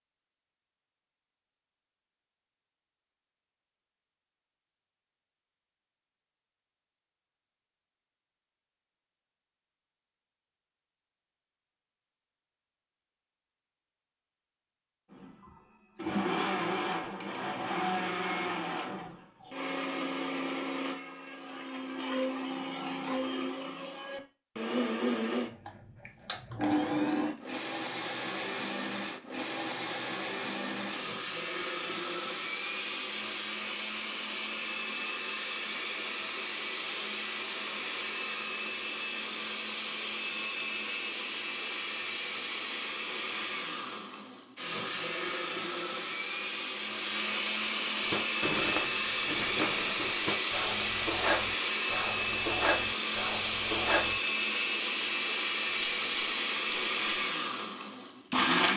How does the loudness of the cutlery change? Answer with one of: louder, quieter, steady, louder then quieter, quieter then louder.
louder.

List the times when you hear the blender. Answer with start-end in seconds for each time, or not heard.
15.1-58.7.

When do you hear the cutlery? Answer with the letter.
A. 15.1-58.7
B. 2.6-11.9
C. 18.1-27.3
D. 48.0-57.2
D.